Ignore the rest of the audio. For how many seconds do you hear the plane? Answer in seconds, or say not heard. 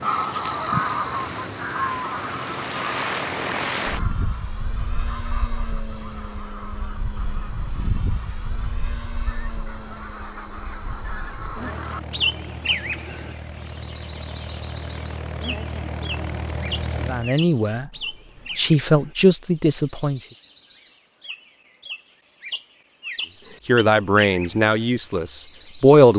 17 s.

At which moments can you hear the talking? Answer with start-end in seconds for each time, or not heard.
17.1-17.9, 18.6-20.2, 23.6-26.1.